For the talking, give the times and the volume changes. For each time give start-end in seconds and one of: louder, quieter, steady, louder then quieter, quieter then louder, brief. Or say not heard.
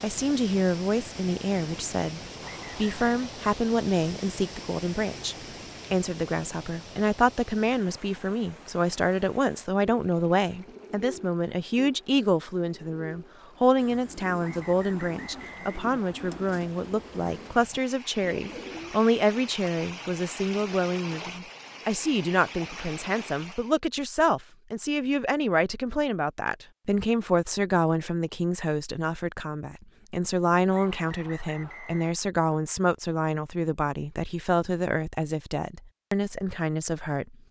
0.0-37.4 steady.